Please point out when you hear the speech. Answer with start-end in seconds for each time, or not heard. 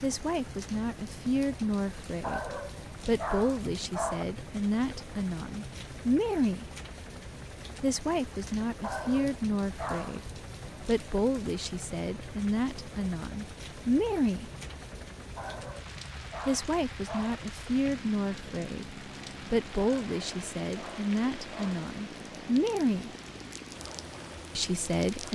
0.0-6.7, 7.8-14.5, 16.4-23.1, 24.6-25.2.